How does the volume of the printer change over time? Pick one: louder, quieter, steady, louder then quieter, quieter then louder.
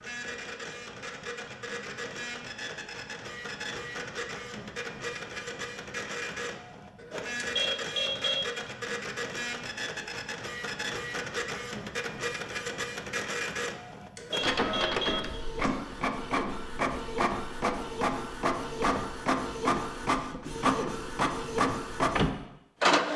louder.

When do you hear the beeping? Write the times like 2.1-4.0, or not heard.
7.3-8.4, 14.2-15.8.